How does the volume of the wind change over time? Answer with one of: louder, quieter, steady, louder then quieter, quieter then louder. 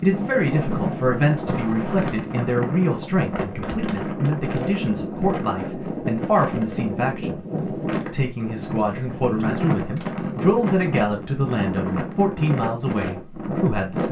steady.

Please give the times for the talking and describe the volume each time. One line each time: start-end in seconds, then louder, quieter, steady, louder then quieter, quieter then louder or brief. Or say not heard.
0.0-14.0 steady.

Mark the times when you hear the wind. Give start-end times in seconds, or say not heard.
0.0-14.0.